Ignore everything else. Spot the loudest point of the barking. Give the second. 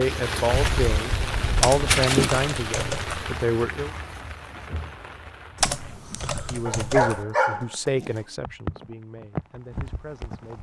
7 s.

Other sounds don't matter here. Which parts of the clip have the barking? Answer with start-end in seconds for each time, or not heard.
0.5-2.1, 6.7-8.1.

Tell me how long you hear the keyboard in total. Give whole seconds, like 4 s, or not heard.
3 s.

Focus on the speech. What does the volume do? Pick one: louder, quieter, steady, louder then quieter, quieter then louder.
quieter.